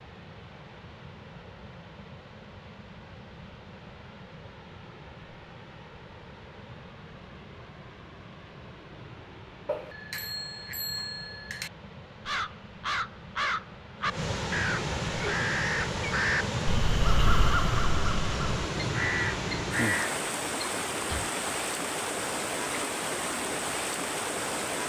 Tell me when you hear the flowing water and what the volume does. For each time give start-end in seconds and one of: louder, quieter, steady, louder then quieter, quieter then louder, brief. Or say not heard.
0.0-24.8 louder.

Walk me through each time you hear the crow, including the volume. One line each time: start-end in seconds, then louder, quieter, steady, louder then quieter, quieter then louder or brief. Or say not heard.
12.2-21.3 steady.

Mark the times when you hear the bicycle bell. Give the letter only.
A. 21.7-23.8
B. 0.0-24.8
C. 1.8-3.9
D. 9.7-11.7
D.